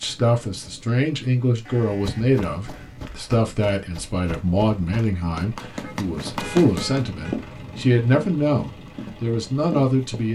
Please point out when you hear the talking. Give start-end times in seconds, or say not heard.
0.0-10.2.